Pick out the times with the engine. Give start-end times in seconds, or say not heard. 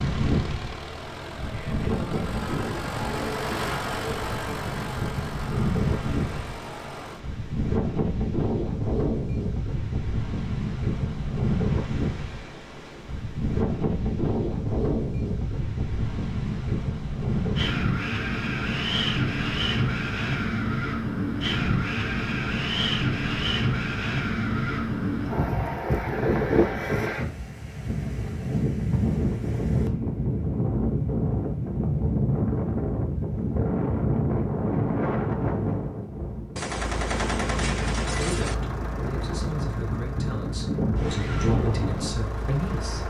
0.0-7.2, 36.8-43.0.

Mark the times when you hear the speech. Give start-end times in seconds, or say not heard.
38.1-43.0.